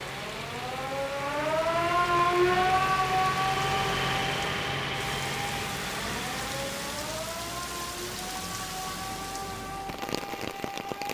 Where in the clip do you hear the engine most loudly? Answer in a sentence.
The volume of the engine peaks at 4 seconds.